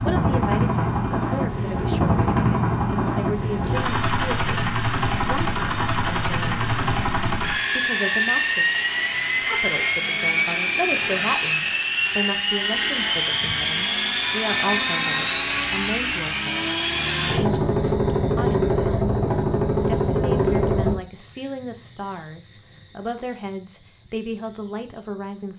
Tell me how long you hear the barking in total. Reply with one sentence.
You can't hear the barking here.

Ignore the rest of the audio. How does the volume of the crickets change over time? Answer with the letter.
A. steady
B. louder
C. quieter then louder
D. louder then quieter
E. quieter
D.